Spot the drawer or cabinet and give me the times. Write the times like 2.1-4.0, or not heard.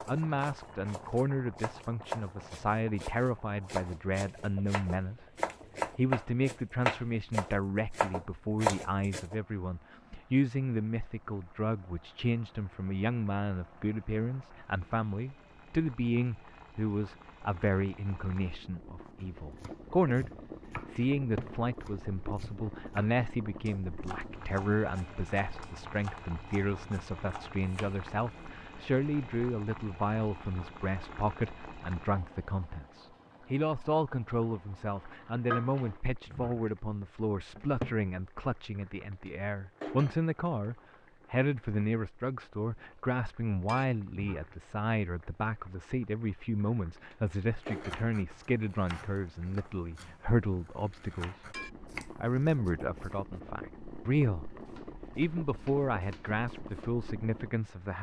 21.1-21.6, 37.5-38.0.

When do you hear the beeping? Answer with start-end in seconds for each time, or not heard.
not heard.